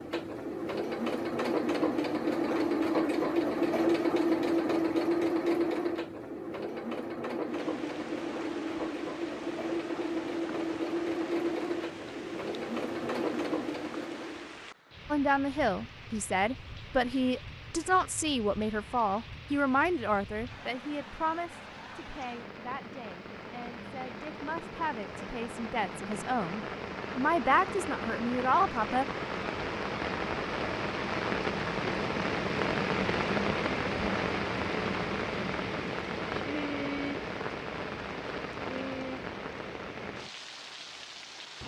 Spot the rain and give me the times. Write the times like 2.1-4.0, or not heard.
7.4-41.6.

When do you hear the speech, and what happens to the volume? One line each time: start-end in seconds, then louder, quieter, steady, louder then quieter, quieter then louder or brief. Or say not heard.
15.1-29.1 quieter then louder.